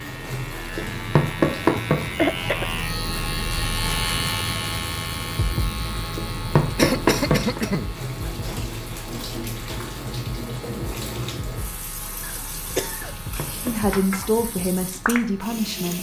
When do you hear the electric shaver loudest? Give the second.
4 s.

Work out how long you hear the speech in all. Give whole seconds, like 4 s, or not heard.
2 s.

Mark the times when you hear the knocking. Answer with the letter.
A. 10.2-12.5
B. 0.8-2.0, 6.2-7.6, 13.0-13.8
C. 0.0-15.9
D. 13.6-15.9
B.